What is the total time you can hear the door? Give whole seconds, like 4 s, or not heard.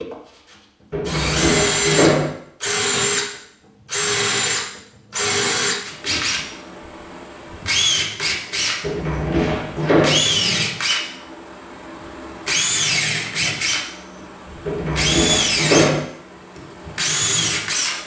4 s.